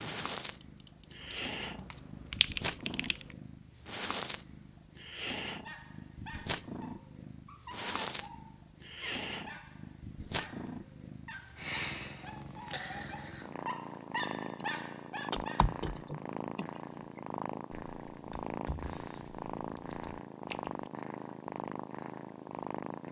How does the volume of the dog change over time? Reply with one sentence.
The volume of the dog goes up.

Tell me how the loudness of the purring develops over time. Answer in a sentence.
The volume of the purring stays about the same.